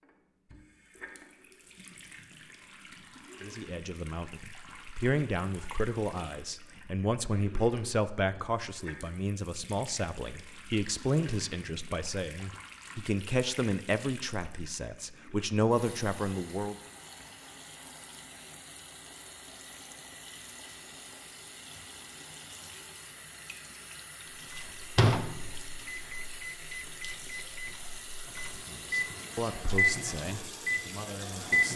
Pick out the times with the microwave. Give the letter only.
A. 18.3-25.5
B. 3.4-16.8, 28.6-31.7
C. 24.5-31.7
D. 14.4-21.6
C.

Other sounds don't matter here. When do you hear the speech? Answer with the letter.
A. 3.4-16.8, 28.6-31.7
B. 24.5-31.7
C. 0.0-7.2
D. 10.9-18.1
A.